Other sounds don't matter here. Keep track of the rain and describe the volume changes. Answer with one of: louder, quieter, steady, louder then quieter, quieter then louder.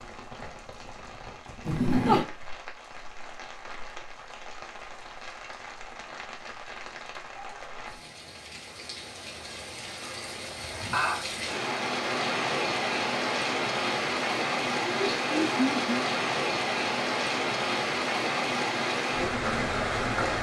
louder.